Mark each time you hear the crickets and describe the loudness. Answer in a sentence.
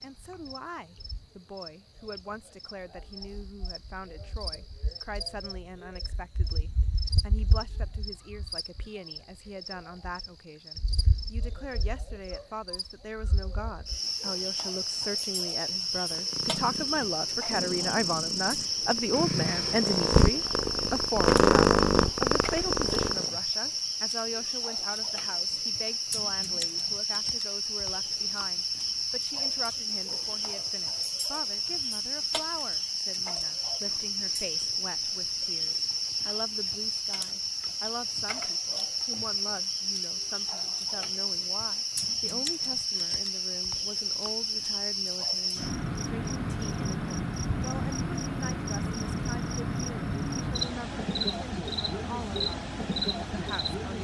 The crickets can be heard from 0.0 to 53.9 s, getting louder.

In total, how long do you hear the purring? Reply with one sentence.
You can hear the purring for 7 seconds altogether.